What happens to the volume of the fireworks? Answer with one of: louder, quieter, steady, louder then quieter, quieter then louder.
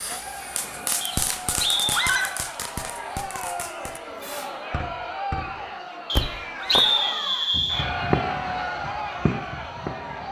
quieter then louder.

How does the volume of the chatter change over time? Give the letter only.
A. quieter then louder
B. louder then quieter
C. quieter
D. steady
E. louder
E.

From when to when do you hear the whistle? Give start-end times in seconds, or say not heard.
1.0-2.0, 6.1-7.9.